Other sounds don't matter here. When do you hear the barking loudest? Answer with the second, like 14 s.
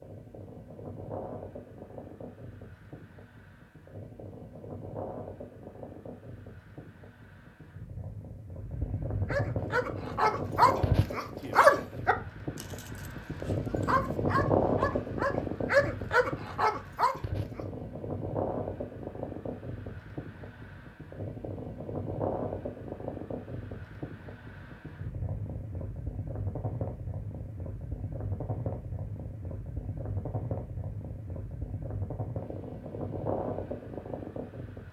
12 s.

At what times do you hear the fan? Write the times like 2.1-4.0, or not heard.
0.0-34.8.